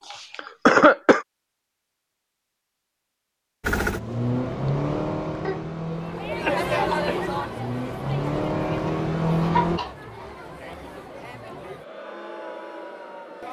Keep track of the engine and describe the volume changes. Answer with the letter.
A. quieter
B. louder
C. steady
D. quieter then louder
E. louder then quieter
D.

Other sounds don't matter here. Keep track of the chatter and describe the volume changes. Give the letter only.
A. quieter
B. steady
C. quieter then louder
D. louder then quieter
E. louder
A.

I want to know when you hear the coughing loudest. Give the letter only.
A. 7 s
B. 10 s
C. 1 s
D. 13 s
C.